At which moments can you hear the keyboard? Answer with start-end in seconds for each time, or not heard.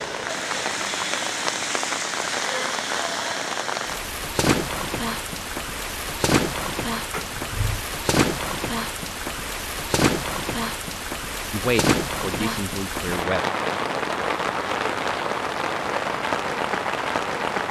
not heard.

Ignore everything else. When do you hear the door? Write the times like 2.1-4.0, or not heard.
7.1-7.8.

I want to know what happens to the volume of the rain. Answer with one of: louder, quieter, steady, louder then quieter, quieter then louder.
steady.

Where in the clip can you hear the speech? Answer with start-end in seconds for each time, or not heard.
11.5-13.4.